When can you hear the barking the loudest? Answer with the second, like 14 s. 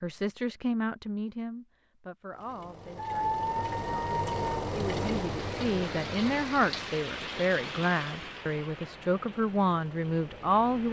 3 s.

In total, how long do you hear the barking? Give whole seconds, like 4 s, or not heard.
2 s.